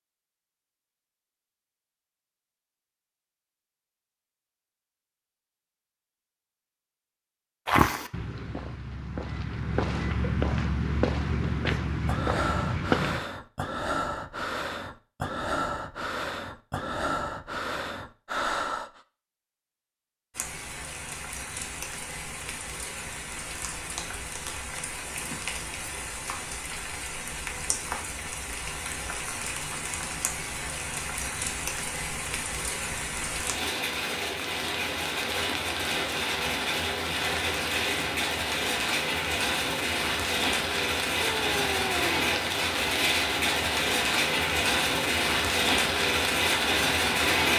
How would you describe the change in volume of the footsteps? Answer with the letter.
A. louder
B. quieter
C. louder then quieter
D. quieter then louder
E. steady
A.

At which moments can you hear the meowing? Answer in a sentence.
You can hear the meowing from 41.2 to 42.3 s.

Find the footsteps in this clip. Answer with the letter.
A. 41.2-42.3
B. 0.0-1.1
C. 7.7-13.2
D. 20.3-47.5
C.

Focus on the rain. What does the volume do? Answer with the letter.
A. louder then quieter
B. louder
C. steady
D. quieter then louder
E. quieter
B.